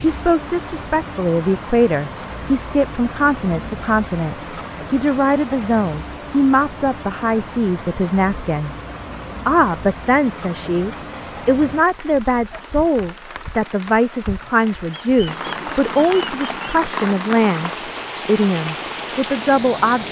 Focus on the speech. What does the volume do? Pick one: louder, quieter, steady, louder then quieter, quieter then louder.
steady.